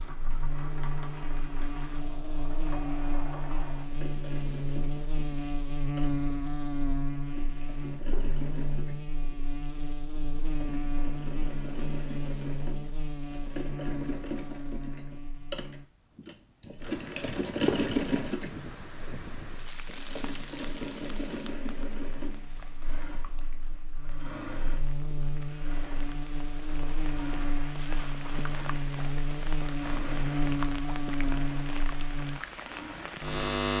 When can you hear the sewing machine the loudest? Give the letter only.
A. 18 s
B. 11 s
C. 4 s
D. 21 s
A.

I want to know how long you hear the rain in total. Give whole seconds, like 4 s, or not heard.
17 s.